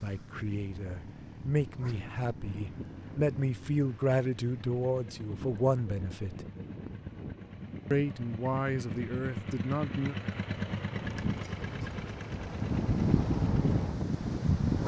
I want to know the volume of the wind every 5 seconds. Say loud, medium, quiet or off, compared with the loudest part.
quiet, quiet, loud.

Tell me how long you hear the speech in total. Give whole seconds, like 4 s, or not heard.
9 s.